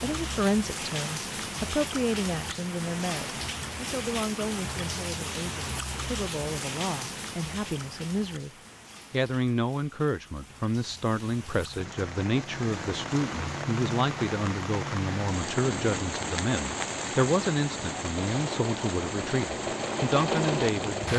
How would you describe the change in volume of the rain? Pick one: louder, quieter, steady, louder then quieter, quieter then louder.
quieter then louder.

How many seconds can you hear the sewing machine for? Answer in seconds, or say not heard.
3 s.